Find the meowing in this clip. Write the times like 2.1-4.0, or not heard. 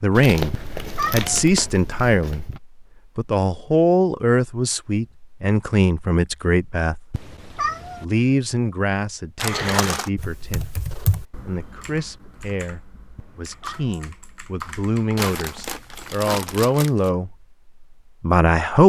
0.5-1.3, 7.1-8.1, 13.2-14.1.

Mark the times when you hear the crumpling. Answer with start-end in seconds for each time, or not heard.
0.1-2.6, 9.3-10.1, 15.2-17.1.